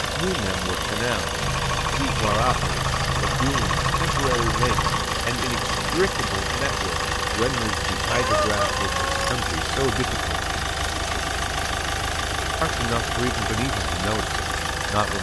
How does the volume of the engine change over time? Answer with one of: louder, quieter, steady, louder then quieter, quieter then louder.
steady.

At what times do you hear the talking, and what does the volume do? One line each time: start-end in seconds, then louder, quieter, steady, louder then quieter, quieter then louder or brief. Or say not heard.
0.0-10.5 steady
12.6-15.1 brief.